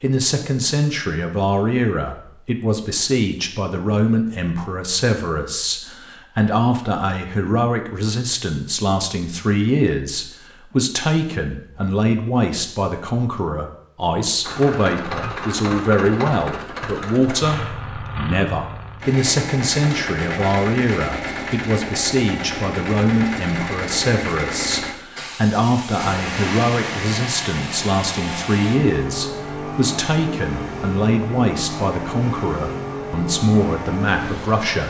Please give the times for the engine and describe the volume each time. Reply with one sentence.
The engine can be heard from 14.4 to 34.8 s, at a steady volume.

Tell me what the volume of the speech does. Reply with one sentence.
The loudness of the speech stays about the same.